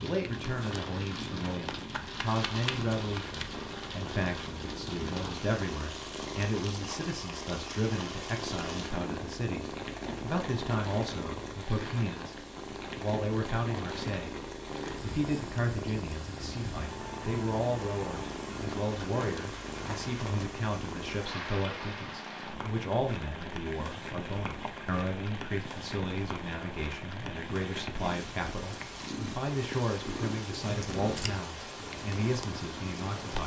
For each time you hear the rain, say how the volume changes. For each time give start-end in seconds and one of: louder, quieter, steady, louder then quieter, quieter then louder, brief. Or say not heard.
0.0-33.4 steady.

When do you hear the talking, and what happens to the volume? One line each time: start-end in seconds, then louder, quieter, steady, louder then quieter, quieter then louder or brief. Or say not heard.
0.0-12.3 steady
12.9-14.3 brief
15.0-33.4 steady.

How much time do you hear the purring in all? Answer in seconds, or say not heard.
33 s.